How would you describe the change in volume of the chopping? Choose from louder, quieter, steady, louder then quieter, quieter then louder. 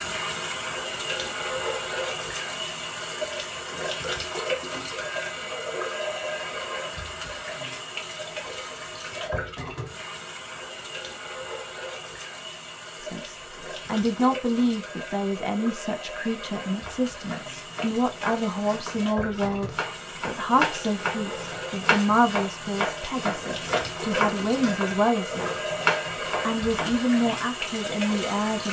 louder.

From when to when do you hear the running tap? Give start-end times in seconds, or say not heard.
0.0-28.6.